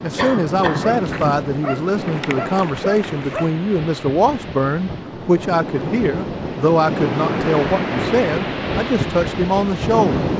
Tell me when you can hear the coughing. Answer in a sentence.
The coughing can be heard from 0.1 to 1.4 s.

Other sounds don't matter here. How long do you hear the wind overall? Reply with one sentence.
You can hear the wind for 10 seconds altogether.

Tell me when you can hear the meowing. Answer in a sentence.
You can't hear the meowing here.